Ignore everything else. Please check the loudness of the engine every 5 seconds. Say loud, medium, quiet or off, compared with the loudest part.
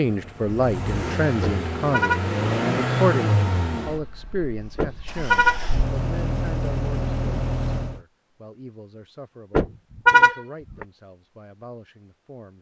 loud, loud, off.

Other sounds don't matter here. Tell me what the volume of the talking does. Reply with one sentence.
The loudness of the talking goes down.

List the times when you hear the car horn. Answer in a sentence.
You can hear the car horn from 1.4 to 2.3 s, from 4.8 to 5.7 s and from 9.6 to 10.8 s.